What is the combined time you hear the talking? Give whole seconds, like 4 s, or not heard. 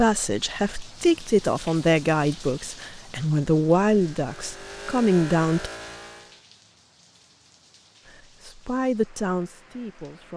8 s.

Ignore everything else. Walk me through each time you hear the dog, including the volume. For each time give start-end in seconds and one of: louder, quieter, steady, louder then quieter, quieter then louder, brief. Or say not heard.
not heard.